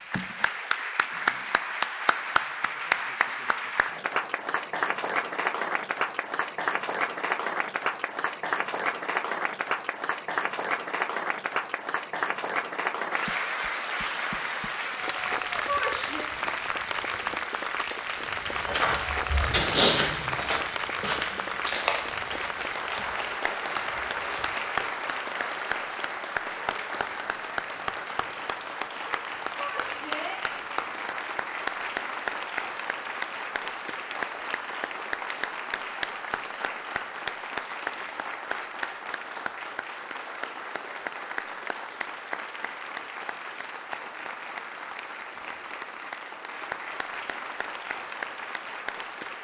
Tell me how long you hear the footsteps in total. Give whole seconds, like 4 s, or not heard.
6 s.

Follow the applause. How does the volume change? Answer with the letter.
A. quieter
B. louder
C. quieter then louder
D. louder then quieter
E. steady
A.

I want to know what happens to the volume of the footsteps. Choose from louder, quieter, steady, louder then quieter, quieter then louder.
quieter.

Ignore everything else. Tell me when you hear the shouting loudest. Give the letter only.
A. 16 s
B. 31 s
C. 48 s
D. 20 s
A.